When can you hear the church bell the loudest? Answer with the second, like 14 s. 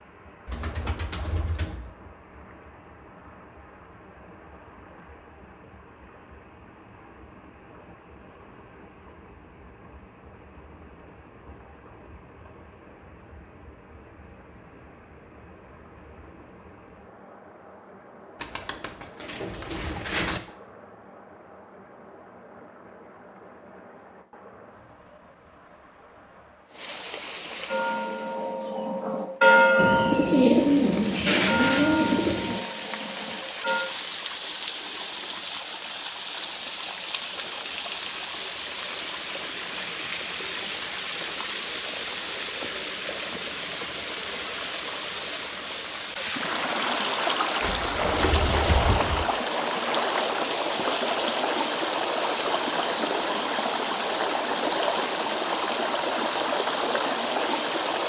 30 s.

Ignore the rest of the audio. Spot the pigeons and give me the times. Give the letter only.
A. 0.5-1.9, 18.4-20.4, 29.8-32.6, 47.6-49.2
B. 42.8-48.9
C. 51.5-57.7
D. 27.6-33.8
A.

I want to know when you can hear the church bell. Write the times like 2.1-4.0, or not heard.
27.6-33.8.